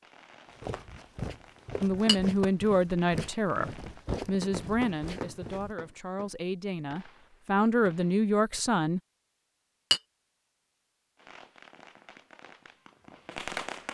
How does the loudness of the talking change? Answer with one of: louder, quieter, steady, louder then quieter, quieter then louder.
quieter then louder.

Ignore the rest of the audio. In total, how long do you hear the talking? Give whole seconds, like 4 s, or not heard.
7 s.